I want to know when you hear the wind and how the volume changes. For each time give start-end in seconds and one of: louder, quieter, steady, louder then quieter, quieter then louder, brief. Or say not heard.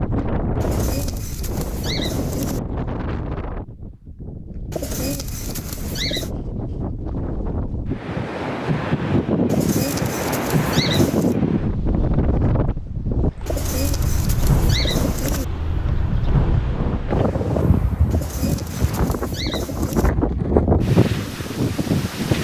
0.0-22.3 louder.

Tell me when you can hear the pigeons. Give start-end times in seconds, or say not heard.
0.6-2.6, 4.7-6.3, 9.4-11.3, 13.4-15.4, 18.1-20.1.